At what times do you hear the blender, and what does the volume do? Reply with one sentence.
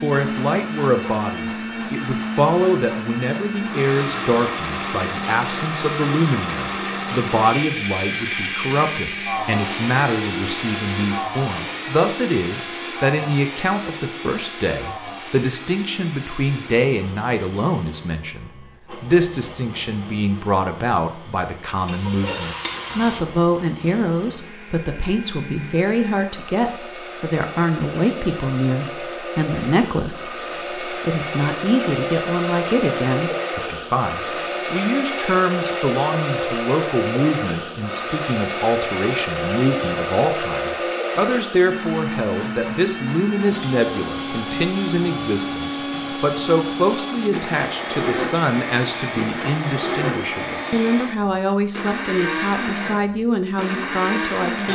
You can hear the blender from 0.0 to 54.7 s, getting quieter then louder.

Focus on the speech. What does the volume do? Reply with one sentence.
The volume of the speech stays about the same.